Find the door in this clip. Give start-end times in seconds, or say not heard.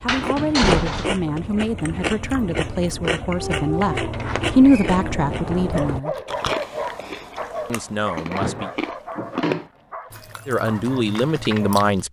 0.1-1.2, 4.1-6.0, 8.3-9.7.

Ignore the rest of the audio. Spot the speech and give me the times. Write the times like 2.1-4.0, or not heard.
0.0-6.2, 7.7-8.7, 10.4-12.0.